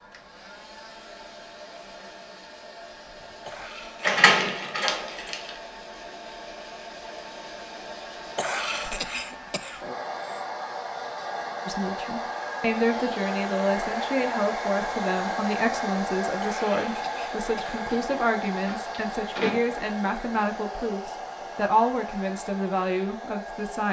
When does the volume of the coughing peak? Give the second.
9 s.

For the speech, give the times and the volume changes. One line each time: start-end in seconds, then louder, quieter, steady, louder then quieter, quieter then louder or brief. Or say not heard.
11.7-23.8 steady.